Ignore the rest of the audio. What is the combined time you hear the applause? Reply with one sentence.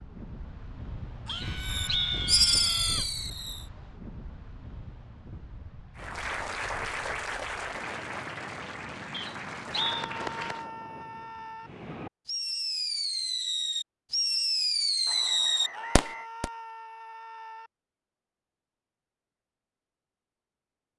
You can hear the applause for 5 seconds altogether.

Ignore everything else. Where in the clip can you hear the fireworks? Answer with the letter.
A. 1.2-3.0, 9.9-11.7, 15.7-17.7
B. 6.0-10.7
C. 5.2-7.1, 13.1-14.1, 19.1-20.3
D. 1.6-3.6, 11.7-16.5
D.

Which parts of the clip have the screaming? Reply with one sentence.
The screaming can be heard from 1.2 to 3.0 s, from 9.9 to 11.7 s and from 15.7 to 17.7 s.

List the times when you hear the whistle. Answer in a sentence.
You can hear the whistle from 1.2 to 3.1 s, from 9.1 to 10.1 s and from 15.1 to 16.3 s.